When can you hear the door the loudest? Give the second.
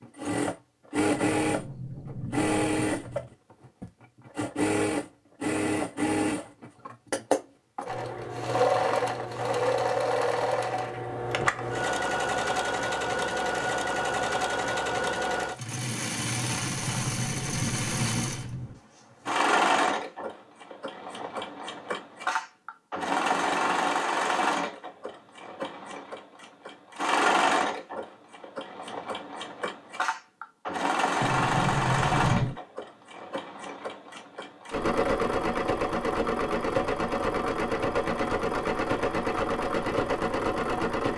32 s.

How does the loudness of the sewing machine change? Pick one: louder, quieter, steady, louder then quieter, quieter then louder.
steady.